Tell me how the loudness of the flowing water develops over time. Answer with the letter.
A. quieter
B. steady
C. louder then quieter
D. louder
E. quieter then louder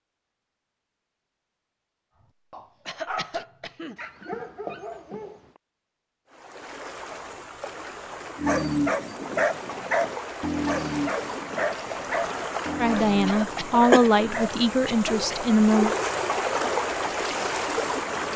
D.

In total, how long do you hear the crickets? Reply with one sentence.
You can't hear the crickets here.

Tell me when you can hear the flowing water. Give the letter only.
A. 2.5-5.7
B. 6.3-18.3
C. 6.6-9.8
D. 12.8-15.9
B.